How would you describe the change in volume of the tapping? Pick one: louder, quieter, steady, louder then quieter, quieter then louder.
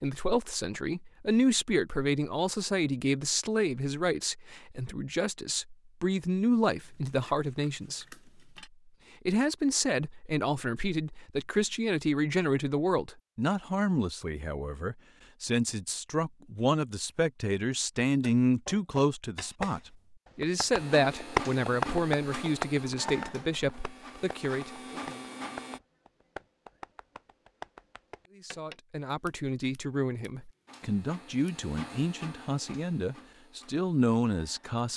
louder then quieter.